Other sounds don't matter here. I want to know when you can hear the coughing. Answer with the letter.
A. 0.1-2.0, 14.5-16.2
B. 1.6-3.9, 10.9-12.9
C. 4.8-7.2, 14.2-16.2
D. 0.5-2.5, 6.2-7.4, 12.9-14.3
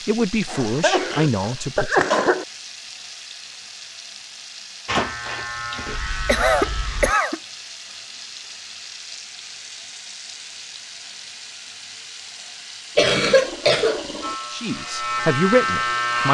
D.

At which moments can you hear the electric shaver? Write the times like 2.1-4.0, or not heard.
4.8-7.2, 14.2-16.2.